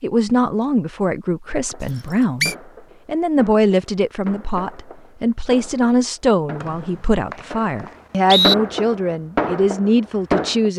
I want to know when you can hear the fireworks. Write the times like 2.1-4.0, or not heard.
1.4-10.7.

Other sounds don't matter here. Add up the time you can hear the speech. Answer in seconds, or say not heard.
11 s.